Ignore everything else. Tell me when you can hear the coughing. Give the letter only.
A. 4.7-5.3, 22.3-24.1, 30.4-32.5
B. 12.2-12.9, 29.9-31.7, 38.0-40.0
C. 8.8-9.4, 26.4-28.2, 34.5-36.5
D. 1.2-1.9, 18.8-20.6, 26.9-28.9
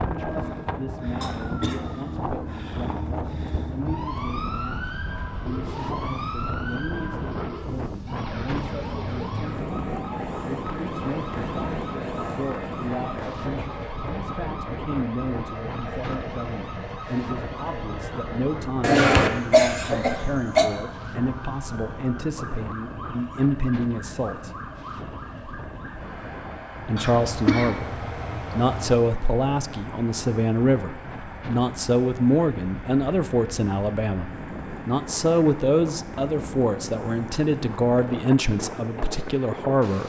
D.